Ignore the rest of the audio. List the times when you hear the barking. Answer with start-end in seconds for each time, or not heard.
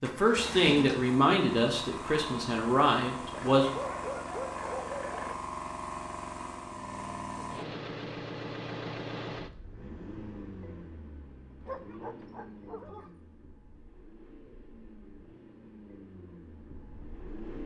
3.3-5.3, 11.6-13.1.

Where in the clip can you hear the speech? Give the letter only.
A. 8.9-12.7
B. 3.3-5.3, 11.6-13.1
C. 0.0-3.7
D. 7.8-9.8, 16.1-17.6
C.